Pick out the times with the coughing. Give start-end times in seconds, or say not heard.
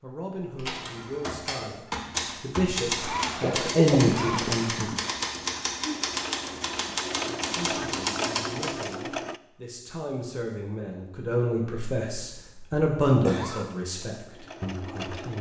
3.4-5.0, 12.2-13.7.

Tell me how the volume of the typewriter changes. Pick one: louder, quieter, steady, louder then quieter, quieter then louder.
steady.